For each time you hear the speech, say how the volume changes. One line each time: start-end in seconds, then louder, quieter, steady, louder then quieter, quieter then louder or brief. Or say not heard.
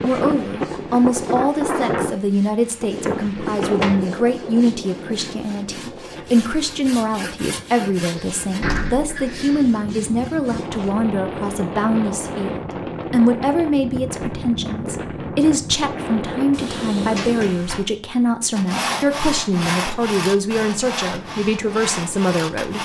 0.0-22.8 steady.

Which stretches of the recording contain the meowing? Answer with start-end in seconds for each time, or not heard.
not heard.